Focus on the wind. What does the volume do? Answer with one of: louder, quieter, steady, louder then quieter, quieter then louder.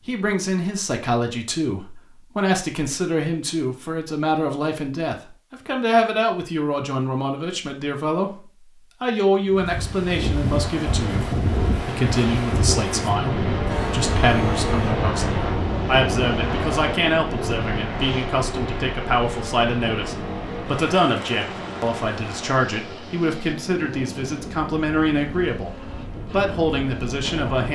quieter.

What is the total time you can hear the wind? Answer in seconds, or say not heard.
18 s.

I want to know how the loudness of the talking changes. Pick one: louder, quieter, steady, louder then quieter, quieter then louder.
steady.